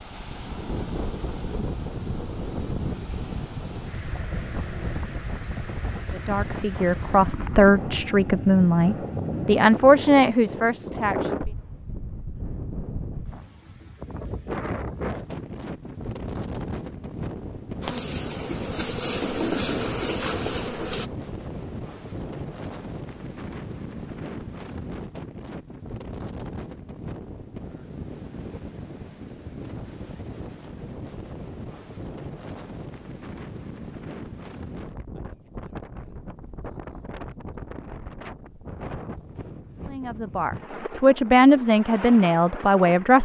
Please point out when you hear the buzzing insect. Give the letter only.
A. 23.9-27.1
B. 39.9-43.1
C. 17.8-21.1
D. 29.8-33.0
C.